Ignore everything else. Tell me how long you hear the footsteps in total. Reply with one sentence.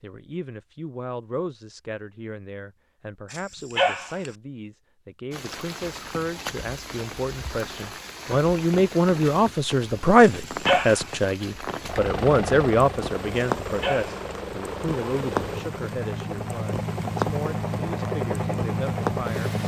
You can't hear the footsteps here.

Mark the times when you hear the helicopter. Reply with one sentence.
You can hear the helicopter from 11.8 to 19.6 s.